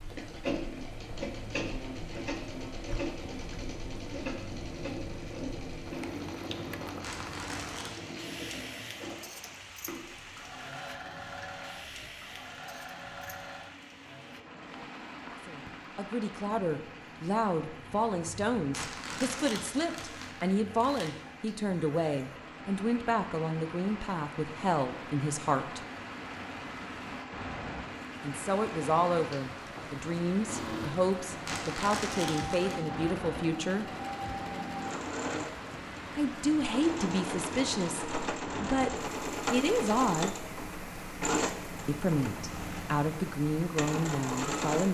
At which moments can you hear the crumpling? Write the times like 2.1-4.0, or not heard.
7.0-8.0, 18.7-21.1, 31.4-32.9.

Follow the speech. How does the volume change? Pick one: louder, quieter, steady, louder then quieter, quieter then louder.
steady.